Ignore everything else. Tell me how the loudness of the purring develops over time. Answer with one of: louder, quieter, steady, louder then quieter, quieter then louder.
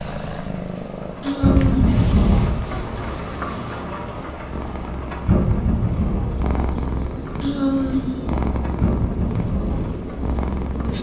quieter then louder.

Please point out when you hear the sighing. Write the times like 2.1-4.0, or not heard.
1.2-2.0, 7.4-8.3.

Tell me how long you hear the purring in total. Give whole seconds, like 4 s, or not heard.
11 s.